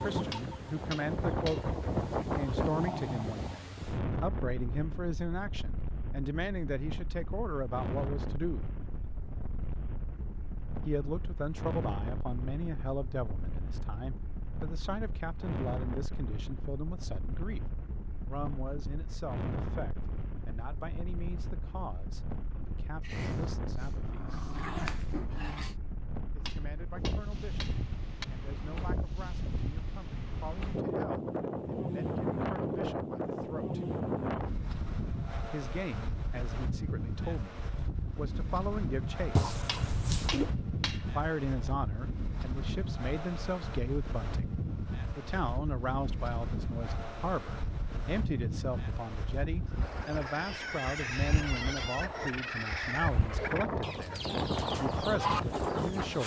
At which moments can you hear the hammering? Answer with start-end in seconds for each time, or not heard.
0.3-1.7, 26.4-28.2, 39.6-41.1.